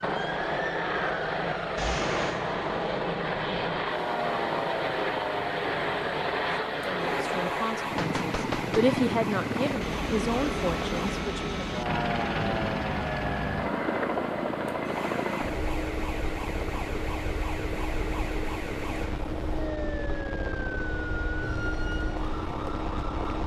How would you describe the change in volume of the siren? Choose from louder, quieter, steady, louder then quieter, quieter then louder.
steady.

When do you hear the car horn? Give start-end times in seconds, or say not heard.
not heard.